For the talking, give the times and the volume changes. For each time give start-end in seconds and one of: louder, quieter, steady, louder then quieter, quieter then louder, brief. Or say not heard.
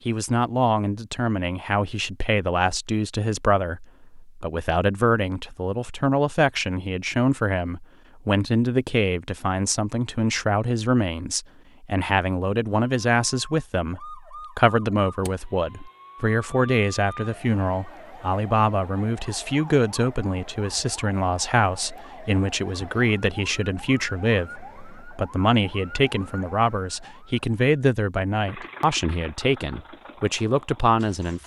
0.1-31.4 steady.